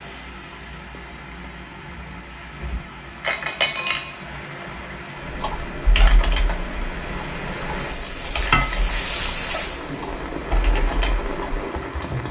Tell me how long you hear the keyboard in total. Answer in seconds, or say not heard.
7 s.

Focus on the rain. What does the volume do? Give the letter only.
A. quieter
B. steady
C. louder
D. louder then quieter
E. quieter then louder
C.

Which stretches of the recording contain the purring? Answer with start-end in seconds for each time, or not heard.
not heard.